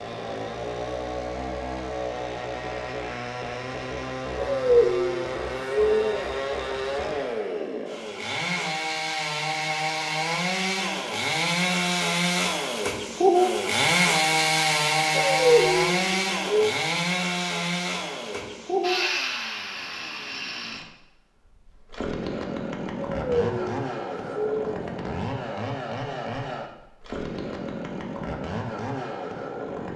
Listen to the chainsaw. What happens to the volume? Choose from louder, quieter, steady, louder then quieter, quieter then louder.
louder then quieter.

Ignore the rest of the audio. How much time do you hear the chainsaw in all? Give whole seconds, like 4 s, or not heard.
30 s.